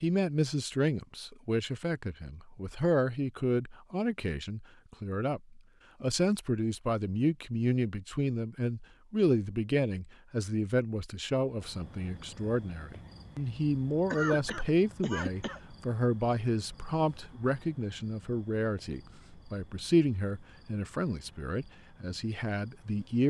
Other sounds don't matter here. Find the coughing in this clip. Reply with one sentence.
You can hear the coughing from 14.1 to 15.6 s.